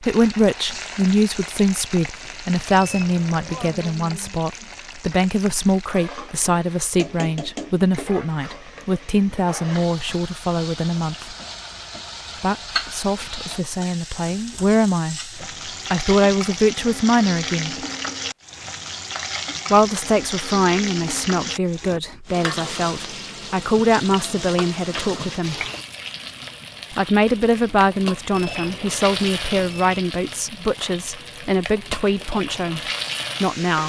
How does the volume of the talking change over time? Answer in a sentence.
The volume of the talking stays about the same.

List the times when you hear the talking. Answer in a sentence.
You can hear the talking from 0.0 to 11.3 s, from 12.4 to 17.8 s, from 19.7 to 25.6 s and from 26.9 to 33.8 s.